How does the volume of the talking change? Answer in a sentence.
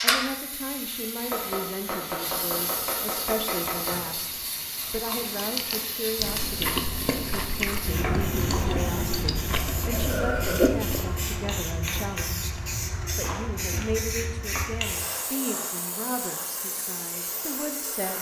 The volume of the talking stays about the same.